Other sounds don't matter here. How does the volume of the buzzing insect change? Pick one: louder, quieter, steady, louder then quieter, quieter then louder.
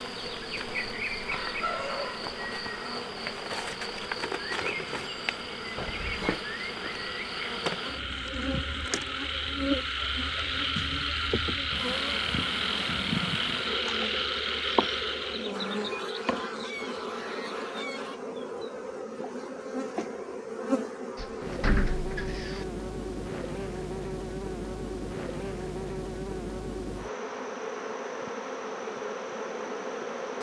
steady.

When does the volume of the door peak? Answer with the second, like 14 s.
22 s.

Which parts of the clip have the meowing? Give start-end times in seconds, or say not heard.
not heard.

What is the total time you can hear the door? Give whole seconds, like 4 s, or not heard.
2 s.